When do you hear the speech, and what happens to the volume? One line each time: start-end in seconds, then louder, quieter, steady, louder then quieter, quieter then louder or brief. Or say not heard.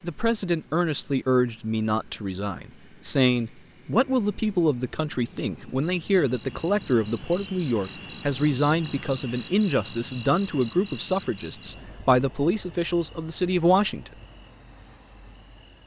0.0-14.1 steady.